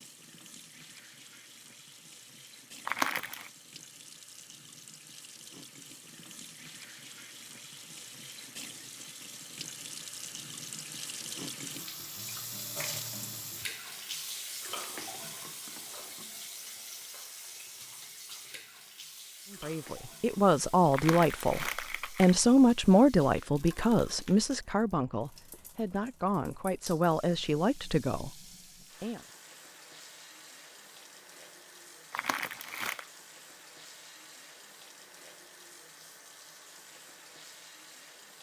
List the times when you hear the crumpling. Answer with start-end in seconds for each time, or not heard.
2.9-3.5, 20.9-22.4, 32.1-33.0.